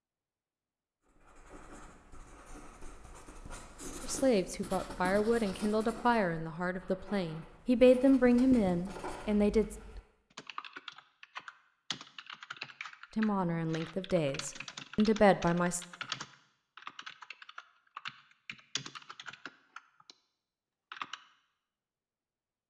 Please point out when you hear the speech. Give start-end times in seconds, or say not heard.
4.0-9.8, 13.2-15.8.